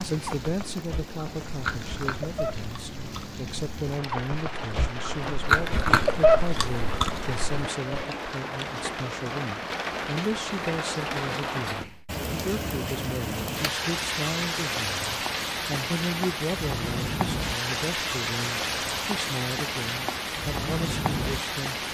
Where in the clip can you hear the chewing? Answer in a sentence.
You can hear the chewing from 0.1 to 8.1 s.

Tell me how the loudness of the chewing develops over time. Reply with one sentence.
The loudness of the chewing goes up.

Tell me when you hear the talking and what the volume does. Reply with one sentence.
The talking can be heard from 0.0 to 21.8 s, at a steady volume.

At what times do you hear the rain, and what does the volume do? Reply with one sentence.
The rain can be heard from 0.0 to 21.8 s, getting louder.